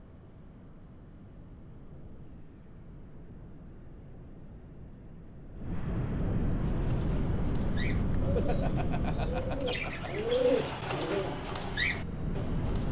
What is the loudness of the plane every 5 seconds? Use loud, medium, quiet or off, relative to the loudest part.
quiet, loud, loud.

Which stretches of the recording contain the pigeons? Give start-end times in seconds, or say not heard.
6.5-12.8.